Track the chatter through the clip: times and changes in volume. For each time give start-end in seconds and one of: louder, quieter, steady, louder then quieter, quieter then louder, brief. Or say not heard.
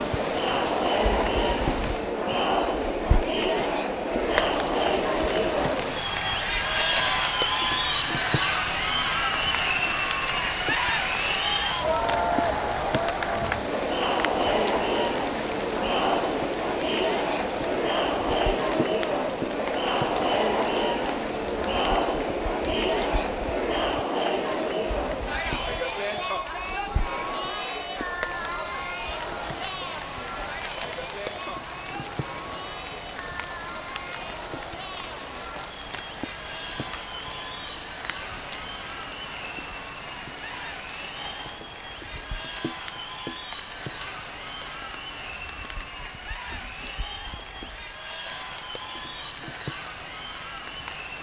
0.0-51.1 quieter.